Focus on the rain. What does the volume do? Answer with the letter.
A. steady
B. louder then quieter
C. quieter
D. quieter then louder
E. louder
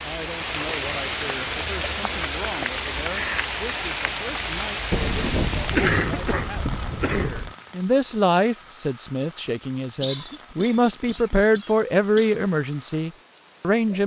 C.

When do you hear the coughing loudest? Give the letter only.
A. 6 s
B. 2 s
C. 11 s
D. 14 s
A.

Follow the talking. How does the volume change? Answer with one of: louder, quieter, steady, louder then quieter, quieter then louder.
louder.